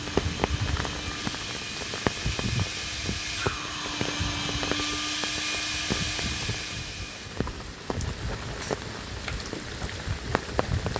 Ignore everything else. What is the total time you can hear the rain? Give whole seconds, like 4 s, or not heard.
11 s.